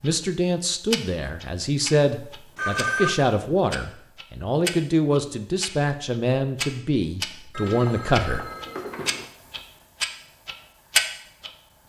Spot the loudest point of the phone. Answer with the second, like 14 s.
3 s.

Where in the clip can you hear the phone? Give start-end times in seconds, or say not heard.
2.5-3.2, 7.5-9.2.